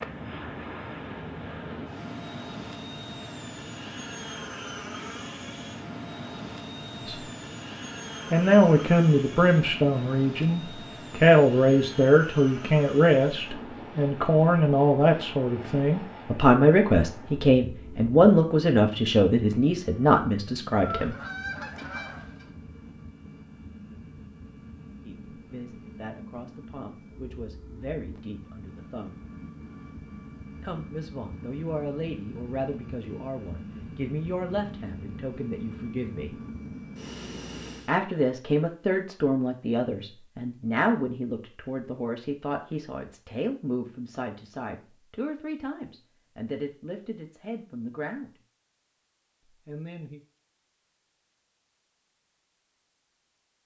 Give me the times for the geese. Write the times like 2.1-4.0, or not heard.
20.7-22.5.